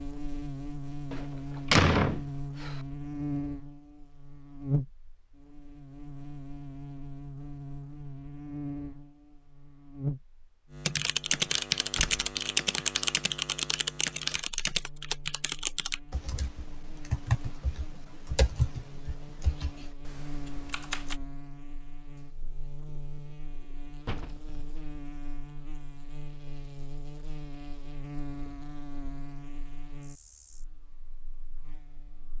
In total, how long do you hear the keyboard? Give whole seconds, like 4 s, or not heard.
10 s.